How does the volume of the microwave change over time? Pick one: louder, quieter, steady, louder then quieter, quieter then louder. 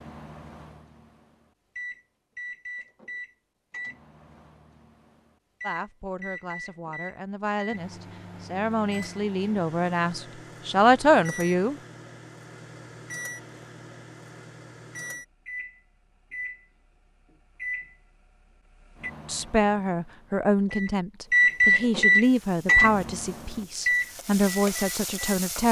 louder.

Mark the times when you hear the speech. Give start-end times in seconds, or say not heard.
5.6-11.8, 19.2-25.6.